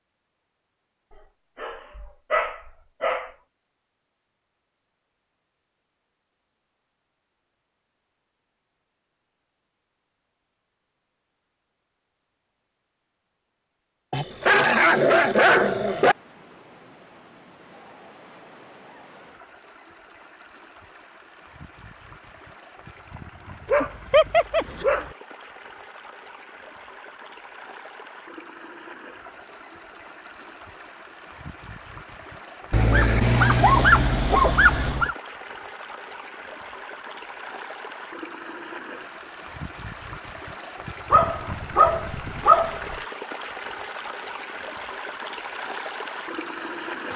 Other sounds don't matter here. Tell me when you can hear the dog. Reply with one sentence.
You can hear the dog from 1.6 to 3.3 s, from 14.1 to 16.1 s, from 23.6 to 25.1 s, from 32.7 to 35.1 s and from 41.1 to 43.0 s.